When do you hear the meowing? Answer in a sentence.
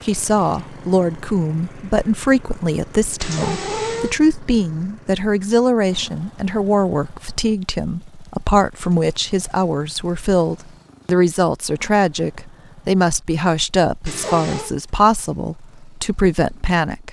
The meowing can be heard from 3.2 to 4.2 s and from 14.1 to 14.7 s.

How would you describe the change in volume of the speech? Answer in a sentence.
The loudness of the speech stays about the same.